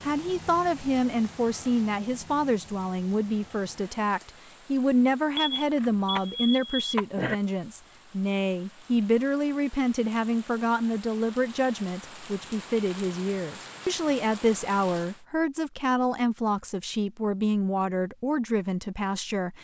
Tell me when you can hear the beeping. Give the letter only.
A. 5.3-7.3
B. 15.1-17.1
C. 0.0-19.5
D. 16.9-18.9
A.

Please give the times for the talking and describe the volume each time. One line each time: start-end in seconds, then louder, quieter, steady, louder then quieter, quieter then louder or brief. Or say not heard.
0.0-19.5 steady.